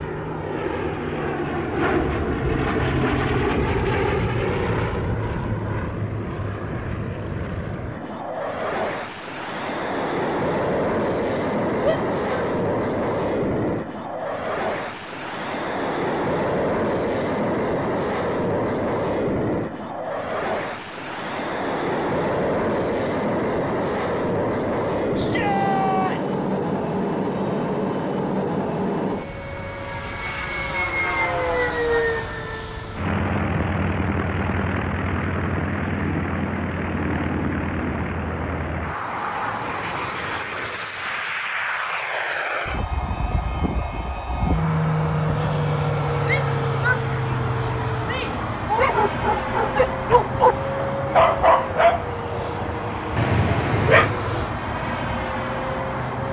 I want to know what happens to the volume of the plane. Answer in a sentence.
The loudness of the plane stays about the same.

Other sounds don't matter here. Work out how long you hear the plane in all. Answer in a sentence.
The plane can be heard for 56 seconds in total.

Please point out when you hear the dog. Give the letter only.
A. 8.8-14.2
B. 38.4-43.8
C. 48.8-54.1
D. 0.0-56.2
C.